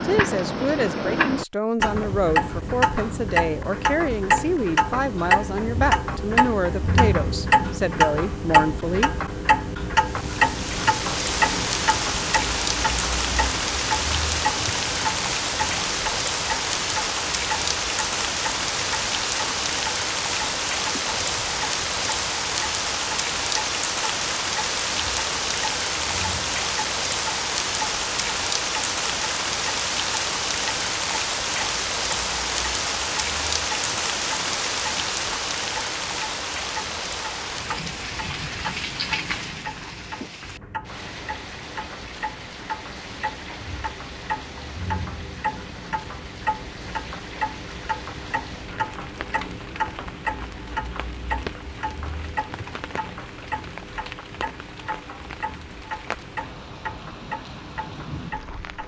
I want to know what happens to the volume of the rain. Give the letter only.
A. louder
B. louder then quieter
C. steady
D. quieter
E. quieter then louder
D.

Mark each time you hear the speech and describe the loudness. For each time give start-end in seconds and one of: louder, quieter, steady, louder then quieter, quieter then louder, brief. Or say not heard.
0.0-9.2 steady.